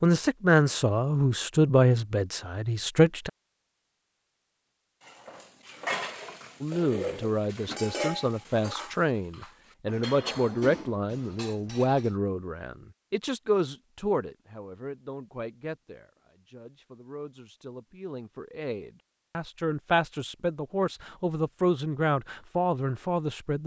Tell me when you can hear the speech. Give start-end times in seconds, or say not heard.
0.0-3.3, 6.6-23.6.